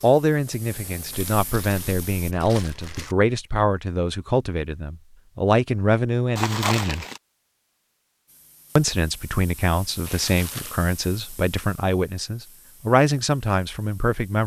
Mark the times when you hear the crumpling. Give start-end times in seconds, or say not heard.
1.1-3.1, 6.3-7.2, 10.0-10.8.